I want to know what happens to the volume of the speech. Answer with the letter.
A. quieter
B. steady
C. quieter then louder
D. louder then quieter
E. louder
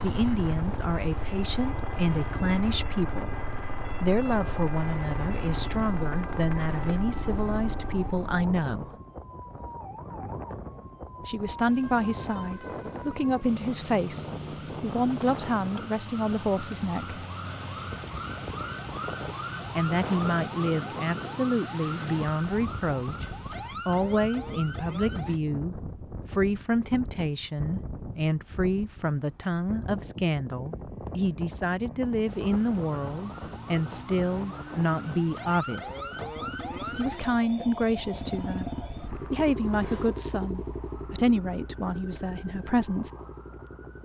B.